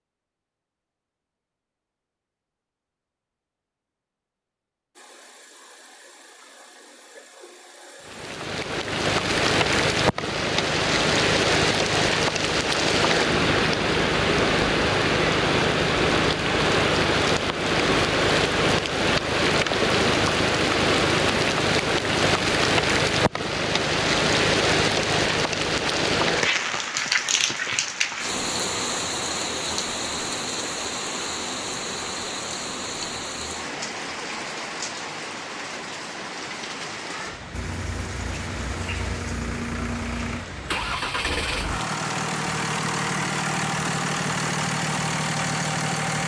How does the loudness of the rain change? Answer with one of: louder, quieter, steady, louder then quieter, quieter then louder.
quieter.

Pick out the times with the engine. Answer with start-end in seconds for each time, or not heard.
5.0-8.3, 37.5-46.2.